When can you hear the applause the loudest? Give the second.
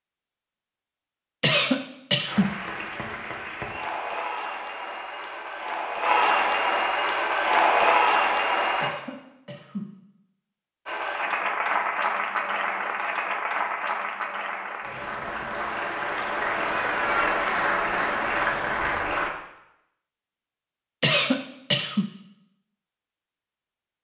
8 s.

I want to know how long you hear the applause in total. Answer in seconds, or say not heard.
15 s.